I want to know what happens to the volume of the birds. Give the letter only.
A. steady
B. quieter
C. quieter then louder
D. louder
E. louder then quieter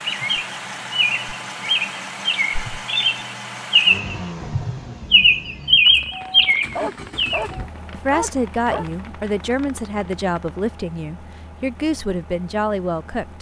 D.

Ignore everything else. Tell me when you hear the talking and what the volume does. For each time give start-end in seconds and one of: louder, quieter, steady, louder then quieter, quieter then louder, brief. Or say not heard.
7.9-13.3 steady.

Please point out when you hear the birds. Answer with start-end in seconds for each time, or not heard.
0.0-7.5.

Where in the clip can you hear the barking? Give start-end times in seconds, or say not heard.
6.3-8.8.